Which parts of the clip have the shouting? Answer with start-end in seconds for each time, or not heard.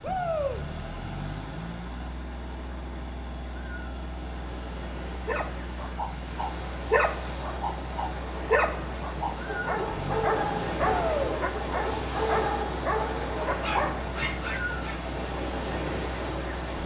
0.0-0.6, 10.8-11.3.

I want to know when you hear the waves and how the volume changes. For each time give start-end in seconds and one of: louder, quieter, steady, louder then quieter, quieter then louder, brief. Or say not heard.
0.0-16.8 louder.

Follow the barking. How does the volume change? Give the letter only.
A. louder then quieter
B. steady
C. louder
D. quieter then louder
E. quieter
B.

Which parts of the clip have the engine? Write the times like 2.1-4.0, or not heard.
0.0-16.8.